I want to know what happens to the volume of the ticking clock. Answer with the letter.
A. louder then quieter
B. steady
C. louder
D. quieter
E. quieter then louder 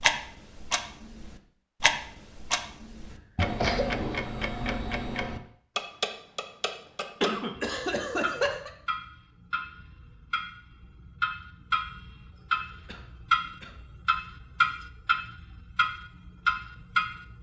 E.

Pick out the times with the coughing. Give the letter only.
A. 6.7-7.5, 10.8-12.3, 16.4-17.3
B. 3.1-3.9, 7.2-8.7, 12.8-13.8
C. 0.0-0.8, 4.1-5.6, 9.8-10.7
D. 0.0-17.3
B.